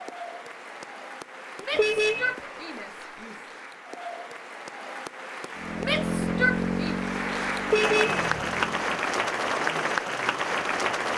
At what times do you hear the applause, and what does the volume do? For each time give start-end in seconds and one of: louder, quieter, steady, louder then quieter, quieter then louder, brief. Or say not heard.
0.0-11.1 louder.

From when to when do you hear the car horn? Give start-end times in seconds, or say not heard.
1.7-2.4, 7.7-8.2.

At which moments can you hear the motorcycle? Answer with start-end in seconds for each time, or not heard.
5.5-9.2.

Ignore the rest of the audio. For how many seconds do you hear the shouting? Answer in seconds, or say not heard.
3 s.